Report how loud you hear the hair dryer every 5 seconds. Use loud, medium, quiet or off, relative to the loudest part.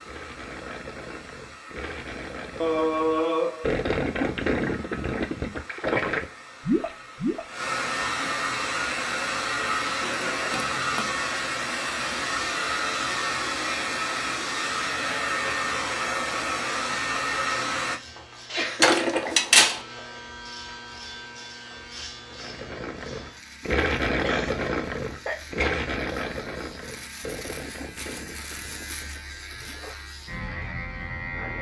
quiet, loud, loud, loud, off, off, off.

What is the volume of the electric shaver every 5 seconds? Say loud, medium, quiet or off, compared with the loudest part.
off, off, off, loud, medium, medium, loud.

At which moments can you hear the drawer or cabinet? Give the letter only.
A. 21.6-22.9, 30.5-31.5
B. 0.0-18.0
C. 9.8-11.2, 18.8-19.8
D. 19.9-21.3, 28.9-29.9
C.